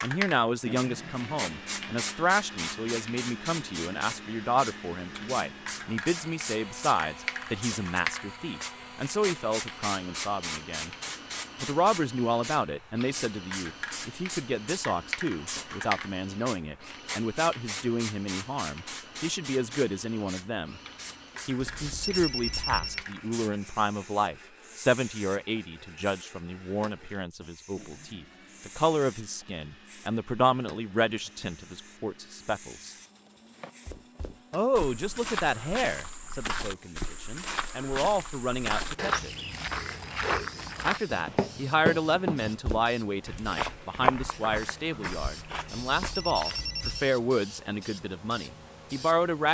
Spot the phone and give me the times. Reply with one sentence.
You can hear the phone from 21.6 to 23.1 s and from 46.0 to 47.1 s.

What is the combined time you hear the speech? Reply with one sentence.
You can hear the speech for 45 seconds altogether.